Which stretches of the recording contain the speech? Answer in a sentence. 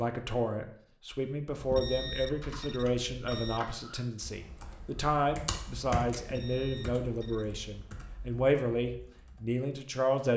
You can hear the speech from 0.0 to 10.3 s.